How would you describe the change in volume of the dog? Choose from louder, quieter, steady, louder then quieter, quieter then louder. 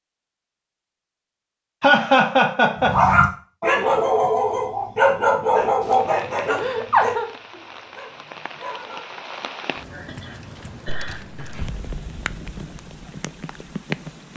quieter.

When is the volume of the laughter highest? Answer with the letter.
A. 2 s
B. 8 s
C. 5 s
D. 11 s
A.